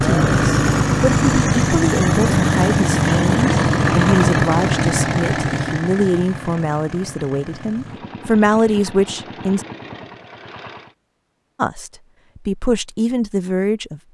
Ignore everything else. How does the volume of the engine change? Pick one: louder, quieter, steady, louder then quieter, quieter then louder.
quieter.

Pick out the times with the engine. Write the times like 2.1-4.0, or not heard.
0.0-10.9.